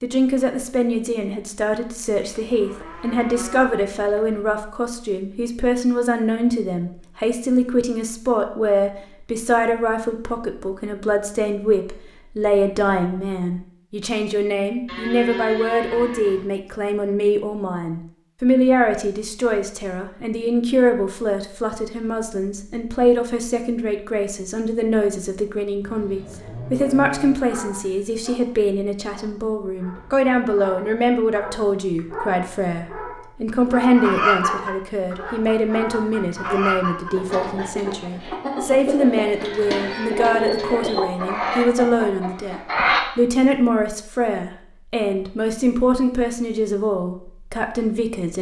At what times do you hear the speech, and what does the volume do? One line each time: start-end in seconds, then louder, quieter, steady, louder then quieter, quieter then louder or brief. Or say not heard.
0.0-48.3 steady.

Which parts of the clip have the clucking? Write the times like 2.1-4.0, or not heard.
33.6-43.0.